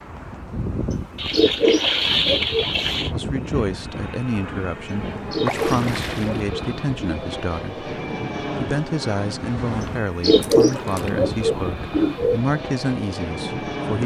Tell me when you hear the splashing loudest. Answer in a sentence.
The loudest moment of the splashing is at 2 seconds.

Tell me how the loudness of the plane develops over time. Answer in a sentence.
The volume of the plane stays about the same.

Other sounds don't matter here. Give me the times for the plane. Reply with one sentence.
The plane can be heard from 0.0 to 14.0 s.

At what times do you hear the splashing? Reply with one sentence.
You can hear the splashing from 1.1 to 3.1 s, from 5.5 to 6.5 s and from 10.4 to 11.1 s.